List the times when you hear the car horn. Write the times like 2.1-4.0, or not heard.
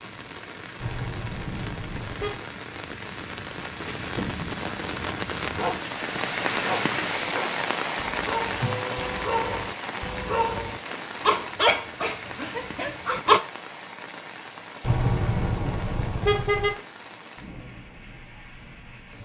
0.8-2.4, 8.6-10.3, 14.8-16.8.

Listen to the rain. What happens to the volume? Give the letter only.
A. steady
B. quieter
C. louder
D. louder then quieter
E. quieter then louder
D.